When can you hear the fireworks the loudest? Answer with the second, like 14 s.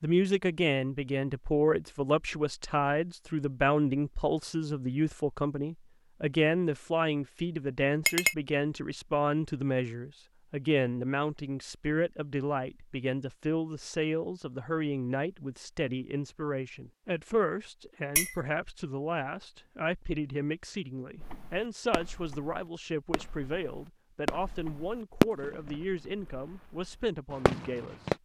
25 s.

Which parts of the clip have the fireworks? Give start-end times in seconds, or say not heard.
21.2-28.1.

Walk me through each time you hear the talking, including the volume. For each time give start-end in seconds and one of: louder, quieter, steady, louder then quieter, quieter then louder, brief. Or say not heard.
0.0-28.1 quieter.